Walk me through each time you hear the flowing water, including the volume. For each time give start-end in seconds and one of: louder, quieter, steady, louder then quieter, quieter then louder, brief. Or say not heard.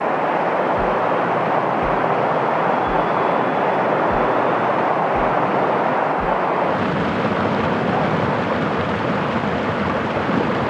0.0-10.6 steady.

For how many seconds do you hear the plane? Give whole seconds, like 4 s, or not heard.
8 s.